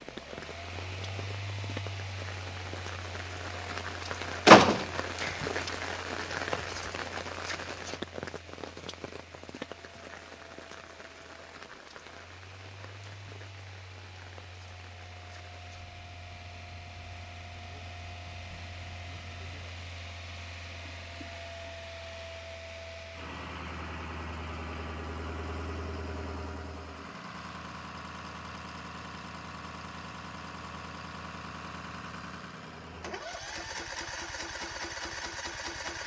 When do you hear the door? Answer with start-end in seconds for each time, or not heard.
4.5-5.7.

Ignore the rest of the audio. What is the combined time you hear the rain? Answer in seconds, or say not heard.
20 s.